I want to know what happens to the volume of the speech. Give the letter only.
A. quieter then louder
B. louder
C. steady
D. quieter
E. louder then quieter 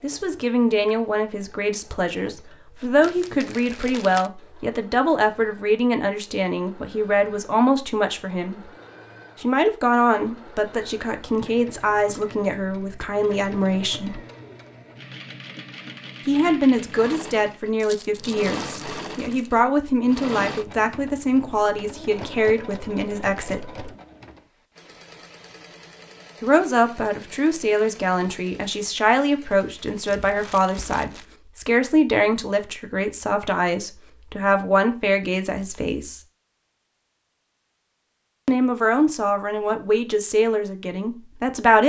C.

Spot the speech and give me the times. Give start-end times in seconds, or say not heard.
0.0-8.7, 9.4-14.2, 16.2-23.9, 26.4-36.2, 38.5-41.8.